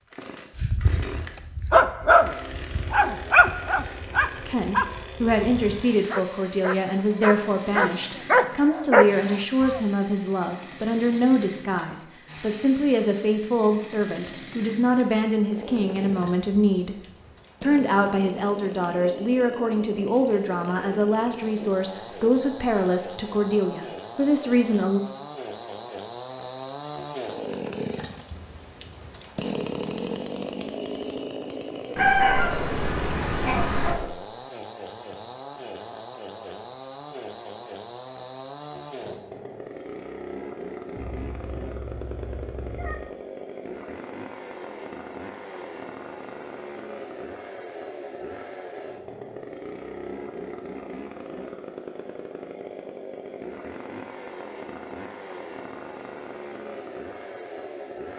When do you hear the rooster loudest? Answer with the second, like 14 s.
32 s.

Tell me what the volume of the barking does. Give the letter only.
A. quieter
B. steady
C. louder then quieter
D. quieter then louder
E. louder
D.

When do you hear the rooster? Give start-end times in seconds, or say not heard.
31.9-34.0.